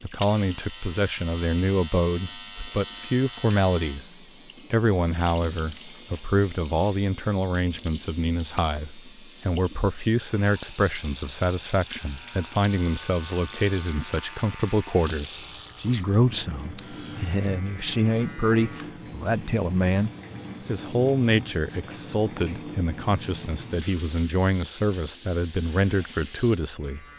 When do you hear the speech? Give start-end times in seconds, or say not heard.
0.0-27.1.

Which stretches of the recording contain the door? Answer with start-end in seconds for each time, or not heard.
not heard.